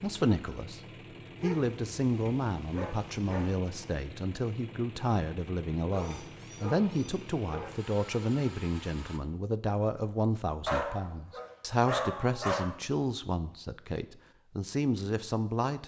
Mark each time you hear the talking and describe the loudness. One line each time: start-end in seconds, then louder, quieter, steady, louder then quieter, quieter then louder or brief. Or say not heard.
0.0-0.8 brief
1.4-15.8 steady.